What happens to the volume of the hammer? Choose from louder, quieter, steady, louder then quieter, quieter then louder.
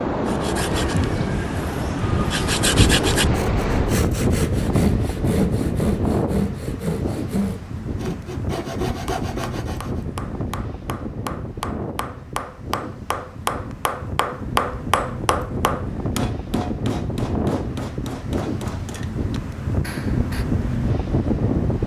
louder then quieter.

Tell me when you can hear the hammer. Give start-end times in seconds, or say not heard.
8.9-20.4.